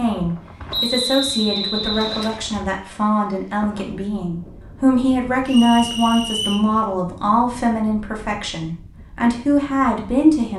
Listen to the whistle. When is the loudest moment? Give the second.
1 s.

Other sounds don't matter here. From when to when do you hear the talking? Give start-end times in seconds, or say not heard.
0.0-10.5.